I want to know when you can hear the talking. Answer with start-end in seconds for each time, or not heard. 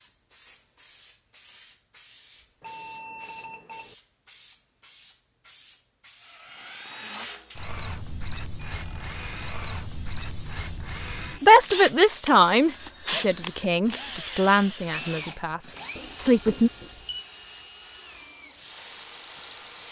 11.4-16.7.